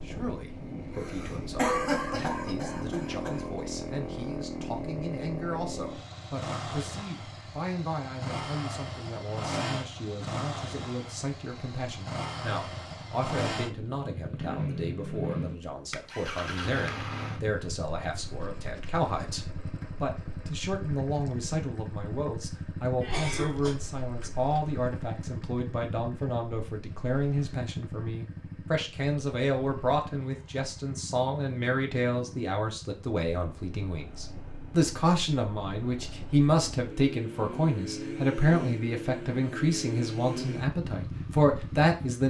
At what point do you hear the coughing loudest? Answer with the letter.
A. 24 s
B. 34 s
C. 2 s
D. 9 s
C.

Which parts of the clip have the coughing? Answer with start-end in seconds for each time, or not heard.
0.9-3.6, 23.0-23.8.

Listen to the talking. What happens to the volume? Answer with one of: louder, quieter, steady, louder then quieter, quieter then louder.
louder.